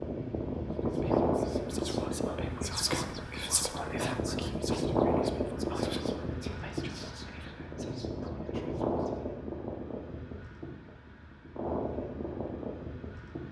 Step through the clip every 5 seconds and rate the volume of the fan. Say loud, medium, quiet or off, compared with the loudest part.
loud, loud, medium.